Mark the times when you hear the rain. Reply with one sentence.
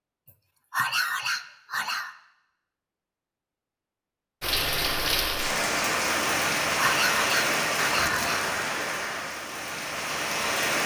The rain can be heard from 4.4 to 10.8 s.